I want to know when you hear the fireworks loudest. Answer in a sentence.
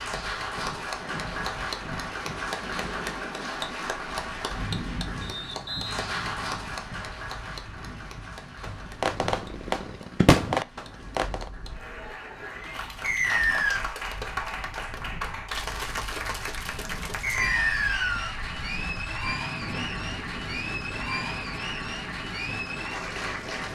The volume of the fireworks peaks at 10 seconds.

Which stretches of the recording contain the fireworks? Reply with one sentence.
You can hear the fireworks from 8.6 to 11.5 s.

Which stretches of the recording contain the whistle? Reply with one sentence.
You can hear the whistle from 5.2 to 6.0 s, from 13.0 to 13.8 s and from 17.2 to 18.4 s.